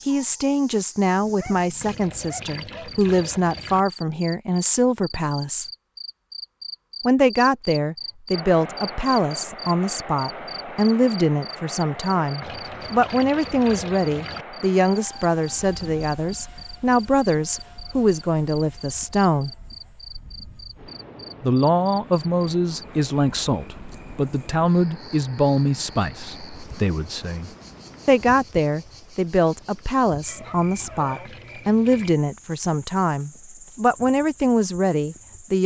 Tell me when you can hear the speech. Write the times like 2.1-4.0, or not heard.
0.1-5.7, 7.0-19.6, 21.4-35.6.